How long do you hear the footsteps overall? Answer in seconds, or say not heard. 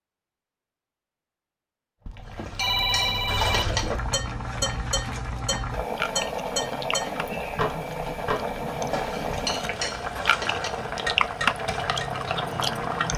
not heard.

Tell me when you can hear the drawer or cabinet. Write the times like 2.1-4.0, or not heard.
not heard.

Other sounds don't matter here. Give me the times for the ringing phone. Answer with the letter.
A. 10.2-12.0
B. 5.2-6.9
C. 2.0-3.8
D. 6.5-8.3
C.